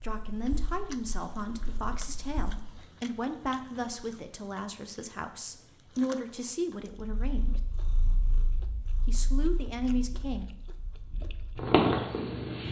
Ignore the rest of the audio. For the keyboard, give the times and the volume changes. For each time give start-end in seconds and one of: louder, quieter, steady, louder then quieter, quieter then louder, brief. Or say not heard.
not heard.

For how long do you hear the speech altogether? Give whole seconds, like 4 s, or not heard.
9 s.